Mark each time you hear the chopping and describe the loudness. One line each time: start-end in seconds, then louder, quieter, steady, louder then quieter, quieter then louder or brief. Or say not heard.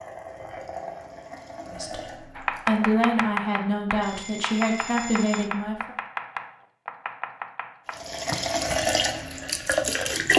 2.4-8.7 quieter.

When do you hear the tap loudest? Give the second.
10 s.